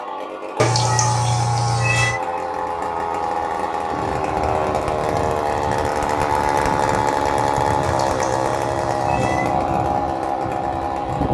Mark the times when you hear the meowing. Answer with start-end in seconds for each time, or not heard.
0.6-2.2, 7.8-9.6.